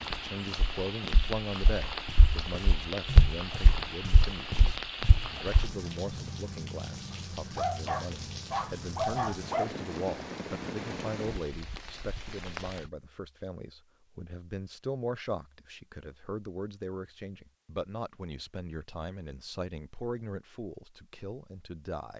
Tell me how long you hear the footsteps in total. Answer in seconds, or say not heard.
6 s.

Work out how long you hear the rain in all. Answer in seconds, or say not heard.
13 s.